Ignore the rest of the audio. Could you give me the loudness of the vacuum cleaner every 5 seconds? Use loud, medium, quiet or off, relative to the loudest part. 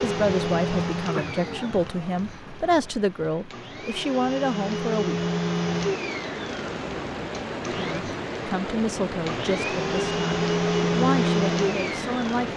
medium, medium, loud.